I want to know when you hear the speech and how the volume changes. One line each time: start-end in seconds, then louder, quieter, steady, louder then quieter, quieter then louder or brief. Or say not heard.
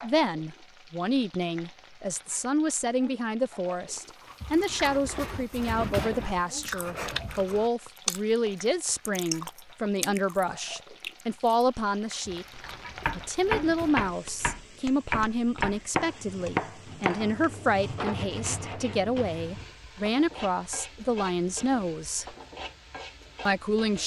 0.0-22.2 steady
23.4-24.0 brief.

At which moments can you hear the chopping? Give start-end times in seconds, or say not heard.
12.7-19.6.